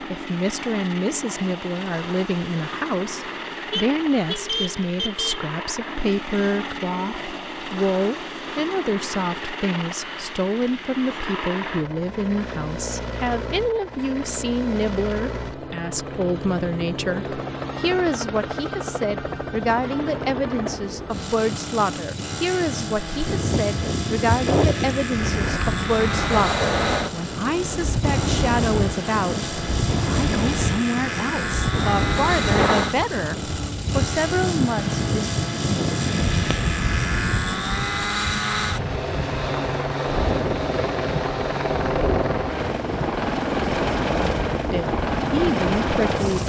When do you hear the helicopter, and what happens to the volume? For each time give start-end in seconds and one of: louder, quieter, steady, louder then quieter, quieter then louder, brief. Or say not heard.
0.0-46.4 louder.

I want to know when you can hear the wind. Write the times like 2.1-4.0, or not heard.
23.1-46.4.